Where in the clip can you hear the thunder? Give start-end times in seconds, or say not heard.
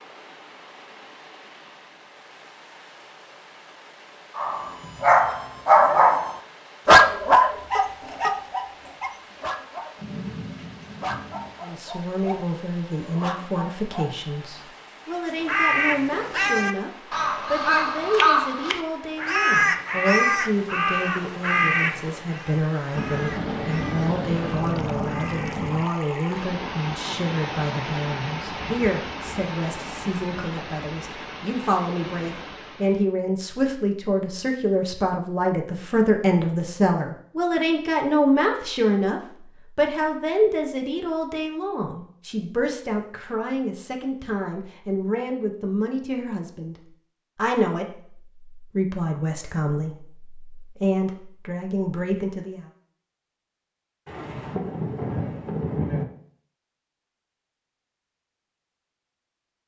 9.9-11.6, 22.9-25.9, 54.0-56.0.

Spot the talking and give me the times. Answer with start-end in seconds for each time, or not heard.
11.6-46.8, 47.4-52.6.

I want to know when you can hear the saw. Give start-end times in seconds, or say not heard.
not heard.